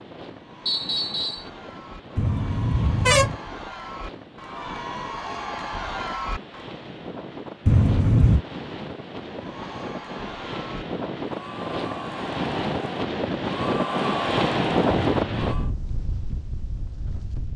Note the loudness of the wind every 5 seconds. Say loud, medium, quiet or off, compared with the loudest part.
quiet, medium, loud, loud.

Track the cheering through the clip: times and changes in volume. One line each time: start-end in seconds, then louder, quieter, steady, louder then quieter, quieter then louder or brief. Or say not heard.
0.3-6.7 louder
9.3-15.7 louder.